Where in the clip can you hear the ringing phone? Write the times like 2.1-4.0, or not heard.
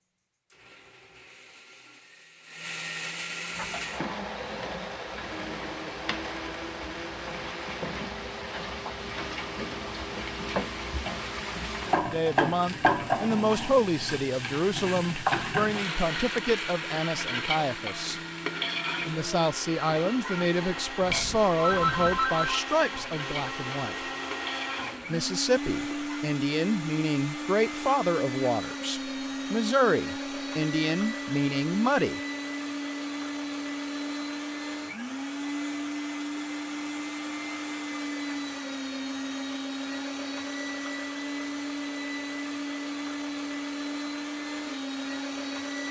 21.0-22.6.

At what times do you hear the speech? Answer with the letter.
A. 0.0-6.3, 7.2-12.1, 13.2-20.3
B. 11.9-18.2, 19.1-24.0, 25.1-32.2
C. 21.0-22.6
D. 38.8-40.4
B.